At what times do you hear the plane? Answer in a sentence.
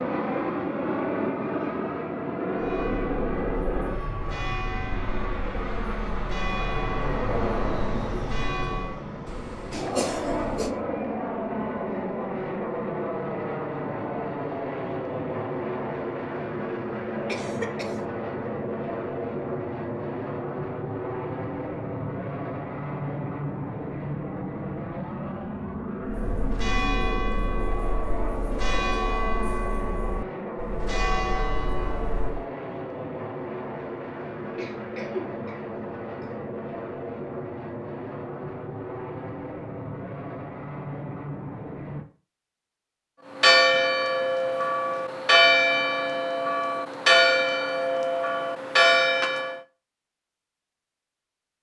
You can hear the plane from 0.0 to 42.0 s.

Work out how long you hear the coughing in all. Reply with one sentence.
The coughing can be heard for 4 seconds in total.